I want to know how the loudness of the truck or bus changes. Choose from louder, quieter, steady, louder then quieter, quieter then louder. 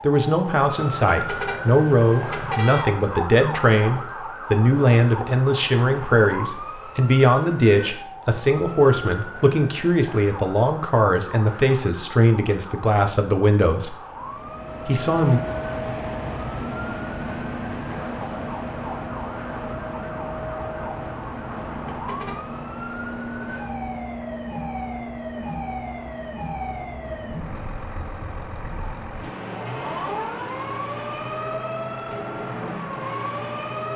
quieter.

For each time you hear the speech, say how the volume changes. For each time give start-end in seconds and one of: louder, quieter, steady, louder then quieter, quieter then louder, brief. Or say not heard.
0.0-13.9 steady
14.8-15.4 brief.